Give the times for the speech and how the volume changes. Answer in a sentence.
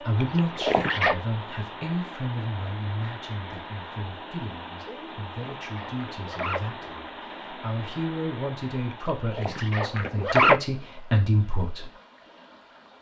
You can hear the speech from 0.0 to 11.9 s, getting quieter then louder.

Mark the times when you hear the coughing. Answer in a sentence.
The coughing can't be heard in this clip.